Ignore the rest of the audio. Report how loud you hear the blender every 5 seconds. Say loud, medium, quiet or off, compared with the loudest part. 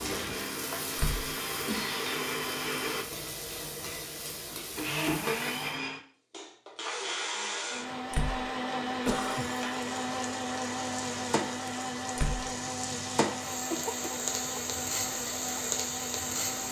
loud, loud, loud, medium.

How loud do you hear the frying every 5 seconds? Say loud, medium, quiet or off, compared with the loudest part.
medium, medium, loud, loud.